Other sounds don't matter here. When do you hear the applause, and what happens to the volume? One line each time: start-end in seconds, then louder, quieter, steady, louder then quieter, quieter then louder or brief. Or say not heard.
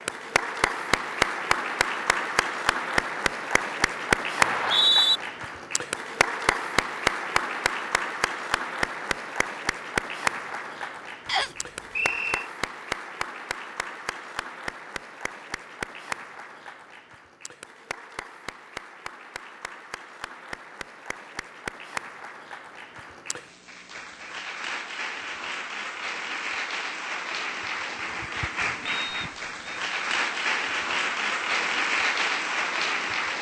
0.0-33.3 quieter then louder.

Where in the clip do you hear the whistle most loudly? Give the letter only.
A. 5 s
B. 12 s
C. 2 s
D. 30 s
A.